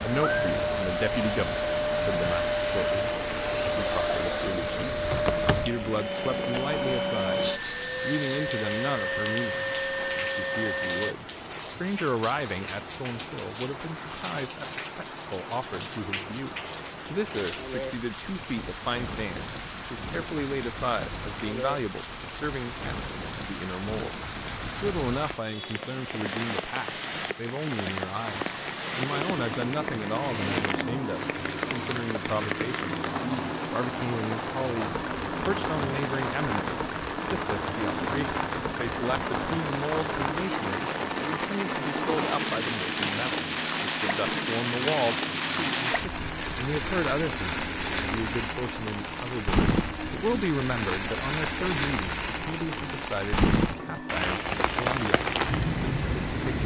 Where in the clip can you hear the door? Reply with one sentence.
The door can be heard from 5.2 to 5.8 s.